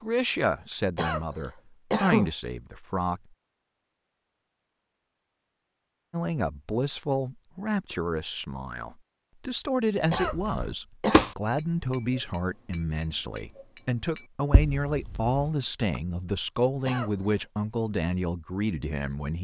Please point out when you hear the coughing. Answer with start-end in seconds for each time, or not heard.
0.9-2.3, 10.1-11.2, 16.9-17.4.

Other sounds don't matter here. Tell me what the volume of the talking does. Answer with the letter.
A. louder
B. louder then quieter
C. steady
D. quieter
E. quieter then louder
C.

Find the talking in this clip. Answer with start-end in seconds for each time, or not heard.
0.0-3.2, 6.1-19.3.